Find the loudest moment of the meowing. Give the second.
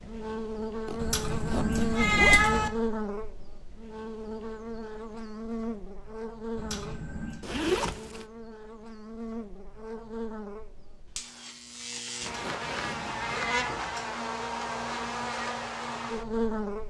2 s.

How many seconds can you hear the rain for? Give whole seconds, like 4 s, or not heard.
not heard.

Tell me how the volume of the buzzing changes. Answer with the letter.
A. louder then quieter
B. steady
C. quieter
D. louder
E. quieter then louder
E.